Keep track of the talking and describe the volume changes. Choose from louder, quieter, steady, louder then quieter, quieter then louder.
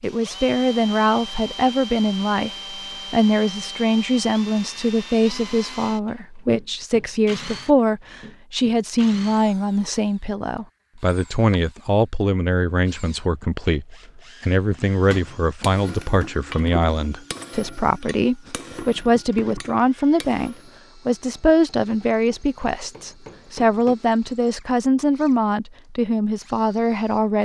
steady.